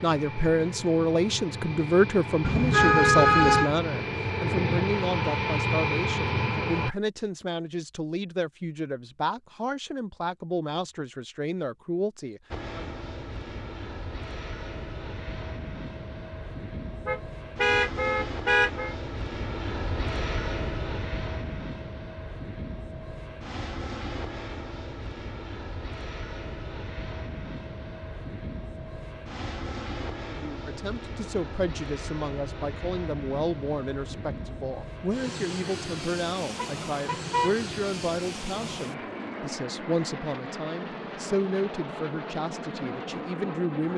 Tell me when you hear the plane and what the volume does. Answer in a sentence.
You can hear the plane from 0.0 to 7.0 s, getting louder; and from 12.5 to 43.9 s, at a steady volume.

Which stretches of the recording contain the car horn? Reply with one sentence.
The car horn can be heard from 2.4 to 3.7 s, from 17.1 to 18.9 s and from 36.5 to 37.6 s.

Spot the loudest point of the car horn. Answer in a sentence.
The loudest moment of the car horn is at 3 seconds.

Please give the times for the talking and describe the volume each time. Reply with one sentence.
The talking can be heard from 0.0 to 12.9 s, getting quieter; and from 30.3 to 43.9 s, at a steady volume.